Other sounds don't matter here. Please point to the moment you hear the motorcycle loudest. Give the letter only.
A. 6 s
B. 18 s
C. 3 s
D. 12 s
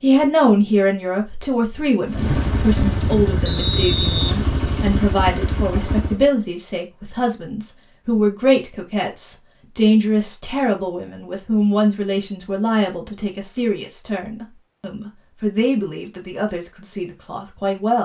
C.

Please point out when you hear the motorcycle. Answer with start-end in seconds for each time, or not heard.
2.0-6.2.